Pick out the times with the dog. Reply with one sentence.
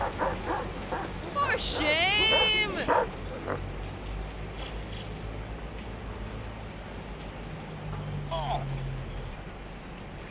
You can hear the dog from 0.0 to 3.6 s.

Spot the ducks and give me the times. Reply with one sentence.
You can't hear the ducks here.